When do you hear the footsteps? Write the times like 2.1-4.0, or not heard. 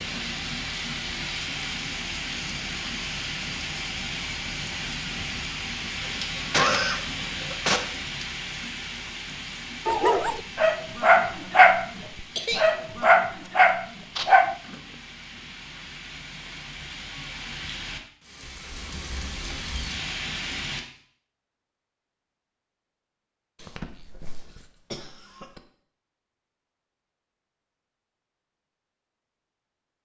not heard.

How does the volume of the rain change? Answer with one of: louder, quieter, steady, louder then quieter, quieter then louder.
quieter then louder.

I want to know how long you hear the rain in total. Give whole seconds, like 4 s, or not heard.
21 s.